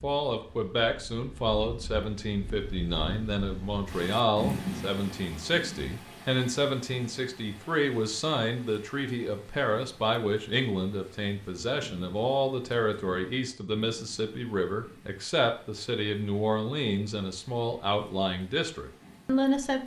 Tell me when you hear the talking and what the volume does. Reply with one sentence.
You can hear the talking from 0.0 to 19.8 s, at a steady volume.